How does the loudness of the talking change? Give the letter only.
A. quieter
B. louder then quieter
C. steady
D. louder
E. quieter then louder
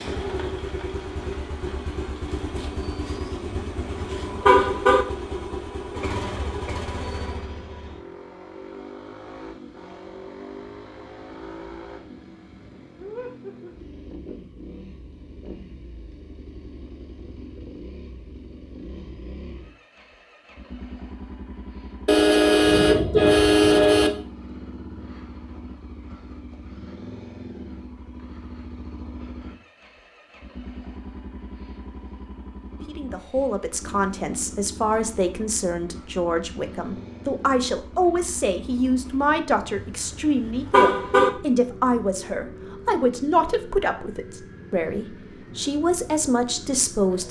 C.